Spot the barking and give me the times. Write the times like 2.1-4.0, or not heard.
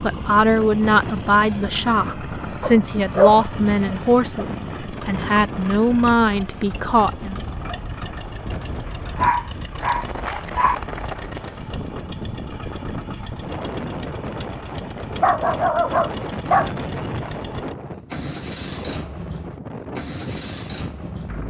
2.6-4.5, 8.8-10.8, 15.2-16.8.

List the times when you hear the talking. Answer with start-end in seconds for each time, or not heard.
0.0-7.4.